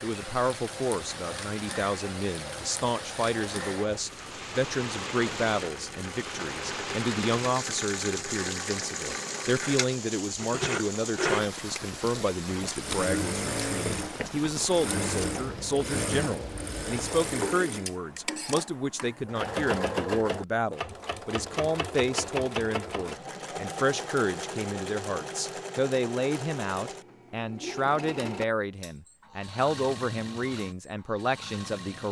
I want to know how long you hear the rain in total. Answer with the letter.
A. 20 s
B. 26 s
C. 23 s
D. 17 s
D.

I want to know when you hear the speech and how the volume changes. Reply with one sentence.
The speech can be heard from 0.0 to 32.0 s, at a steady volume.